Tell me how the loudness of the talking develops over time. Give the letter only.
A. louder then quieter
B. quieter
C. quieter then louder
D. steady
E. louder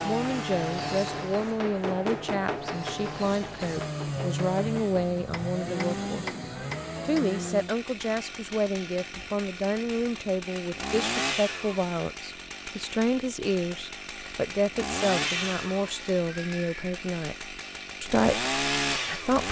D.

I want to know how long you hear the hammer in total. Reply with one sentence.
You can hear the hammer for 7 seconds altogether.